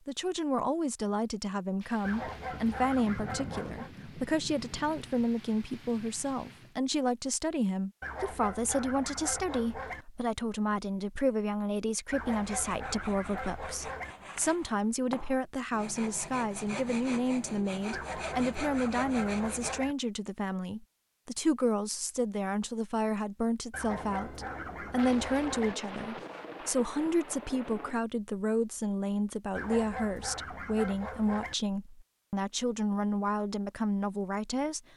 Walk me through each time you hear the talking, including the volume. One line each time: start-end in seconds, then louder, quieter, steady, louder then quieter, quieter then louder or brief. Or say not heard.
0.1-34.8 steady.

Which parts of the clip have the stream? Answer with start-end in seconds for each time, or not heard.
not heard.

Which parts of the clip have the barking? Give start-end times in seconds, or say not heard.
2.0-3.9, 8.0-10.1, 12.1-14.2, 17.9-19.9, 23.7-25.8, 29.6-31.6.